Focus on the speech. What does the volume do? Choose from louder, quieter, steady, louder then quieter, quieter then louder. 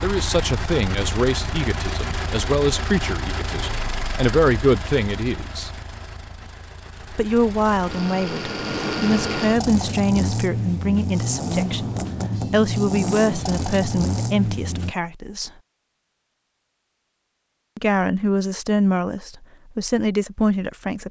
steady.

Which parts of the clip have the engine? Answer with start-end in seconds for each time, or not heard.
0.0-14.9.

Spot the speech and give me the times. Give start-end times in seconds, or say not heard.
0.0-5.7, 7.2-15.5, 17.8-21.0.